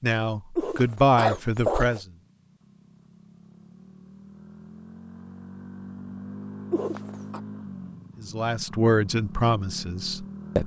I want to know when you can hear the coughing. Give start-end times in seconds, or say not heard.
0.6-2.0, 6.7-7.4.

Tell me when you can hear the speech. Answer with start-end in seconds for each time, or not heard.
0.0-2.0, 8.2-10.6.